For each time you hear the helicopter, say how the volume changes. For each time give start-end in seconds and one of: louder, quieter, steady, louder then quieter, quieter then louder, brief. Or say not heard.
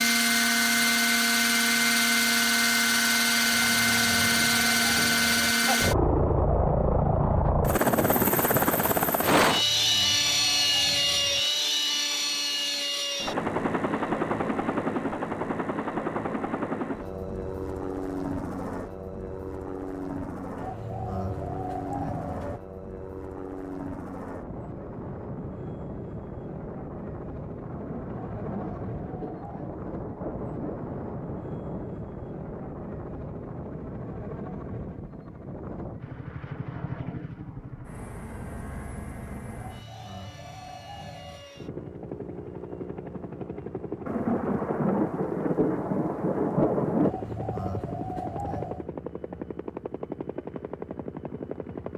0.0-51.9 quieter.